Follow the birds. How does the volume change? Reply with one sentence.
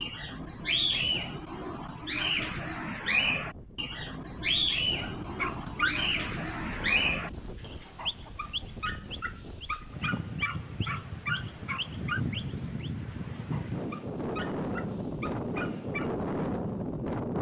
The volume of the birds goes down.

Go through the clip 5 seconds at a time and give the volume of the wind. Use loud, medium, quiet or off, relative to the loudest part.
quiet, quiet, loud, loud.